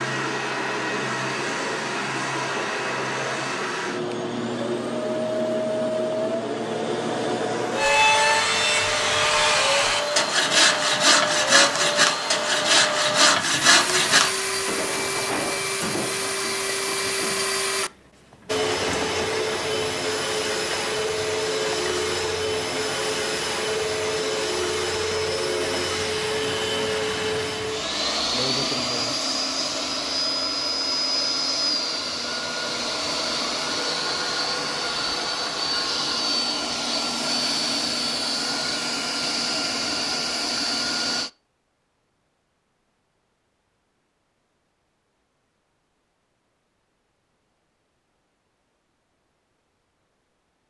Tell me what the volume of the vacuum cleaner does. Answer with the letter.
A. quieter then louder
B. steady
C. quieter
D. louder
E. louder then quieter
B.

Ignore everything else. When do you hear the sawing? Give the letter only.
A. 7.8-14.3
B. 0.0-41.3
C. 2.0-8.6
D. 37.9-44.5
A.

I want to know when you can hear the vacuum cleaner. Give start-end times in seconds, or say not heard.
0.0-41.3.